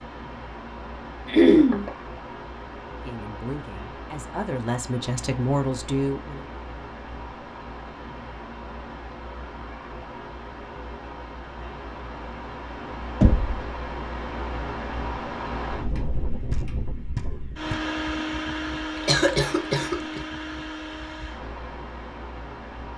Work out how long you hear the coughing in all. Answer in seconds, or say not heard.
2 s.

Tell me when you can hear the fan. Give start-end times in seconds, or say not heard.
0.0-22.9.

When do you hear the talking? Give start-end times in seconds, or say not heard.
3.0-6.5.